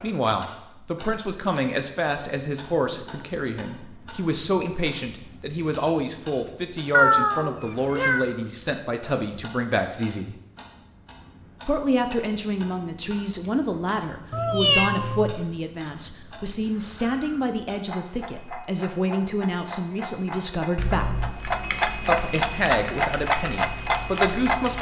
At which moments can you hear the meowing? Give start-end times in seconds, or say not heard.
6.9-8.2, 14.3-15.3.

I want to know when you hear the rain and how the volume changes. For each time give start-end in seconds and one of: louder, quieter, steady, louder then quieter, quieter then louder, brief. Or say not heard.
not heard.